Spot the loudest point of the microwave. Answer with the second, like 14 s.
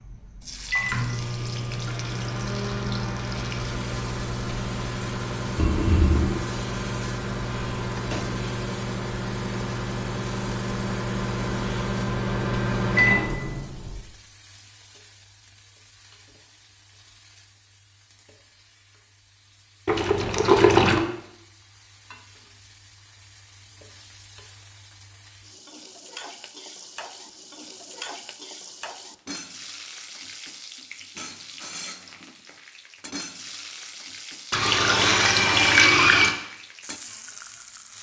13 s.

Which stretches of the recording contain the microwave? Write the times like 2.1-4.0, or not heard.
0.0-14.1.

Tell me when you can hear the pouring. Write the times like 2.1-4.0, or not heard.
5.5-6.5, 19.9-21.0, 34.5-36.4.